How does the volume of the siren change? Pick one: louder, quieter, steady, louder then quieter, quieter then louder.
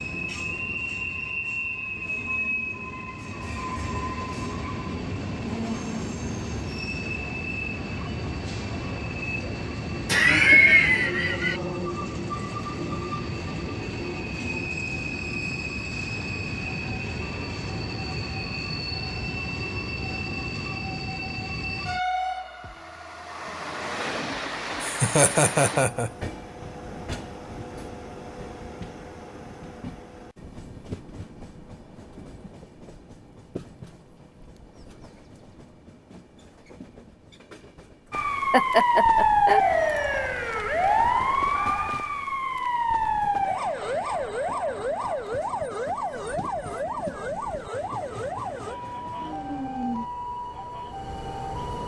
quieter.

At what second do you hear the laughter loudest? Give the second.
11 s.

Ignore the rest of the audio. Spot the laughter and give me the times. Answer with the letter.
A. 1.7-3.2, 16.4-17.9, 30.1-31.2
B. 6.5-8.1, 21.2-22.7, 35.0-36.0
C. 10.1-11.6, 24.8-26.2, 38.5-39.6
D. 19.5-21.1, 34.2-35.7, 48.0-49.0
C.